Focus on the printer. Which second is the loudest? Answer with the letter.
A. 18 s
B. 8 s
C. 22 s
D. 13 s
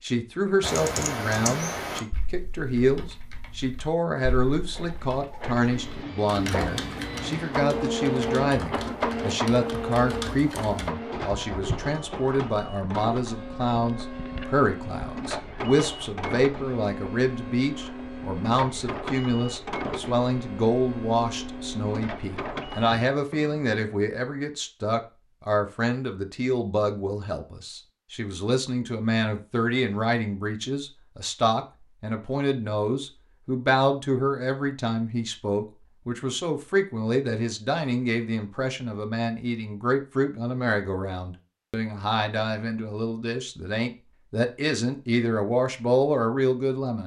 B.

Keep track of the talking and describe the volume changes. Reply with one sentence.
The loudness of the talking stays about the same.